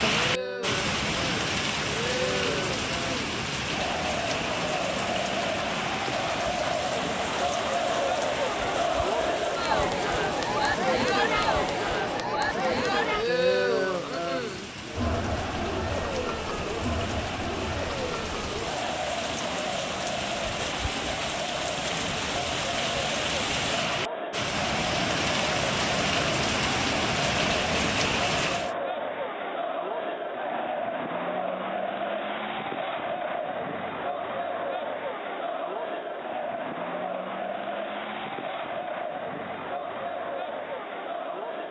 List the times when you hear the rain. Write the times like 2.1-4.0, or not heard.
0.0-28.8.